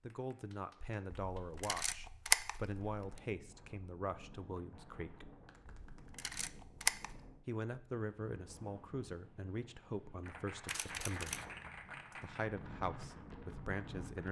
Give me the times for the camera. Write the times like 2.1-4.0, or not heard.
1.1-2.9, 5.9-7.2, 10.7-11.5.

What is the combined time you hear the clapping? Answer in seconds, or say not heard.
5 s.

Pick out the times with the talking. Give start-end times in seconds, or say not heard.
0.0-5.3, 7.5-11.4, 12.1-14.2.